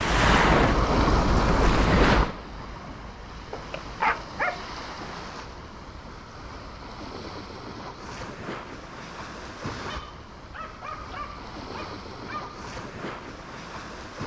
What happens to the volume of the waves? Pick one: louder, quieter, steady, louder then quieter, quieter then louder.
quieter.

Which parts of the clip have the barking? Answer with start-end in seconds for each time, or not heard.
3.5-5.0, 9.8-12.6.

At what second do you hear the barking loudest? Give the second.
4 s.